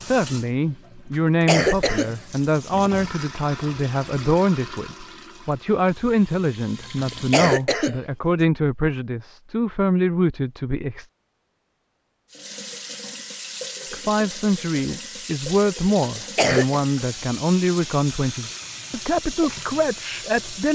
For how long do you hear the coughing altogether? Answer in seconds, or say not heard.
3 s.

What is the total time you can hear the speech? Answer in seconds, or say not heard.
18 s.